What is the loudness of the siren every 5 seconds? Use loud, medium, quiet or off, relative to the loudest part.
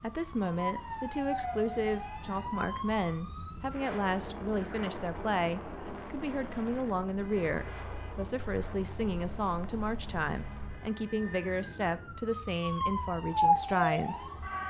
medium, quiet, loud.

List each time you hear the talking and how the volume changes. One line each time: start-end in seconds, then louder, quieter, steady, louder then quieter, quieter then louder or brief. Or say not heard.
0.0-14.3 steady.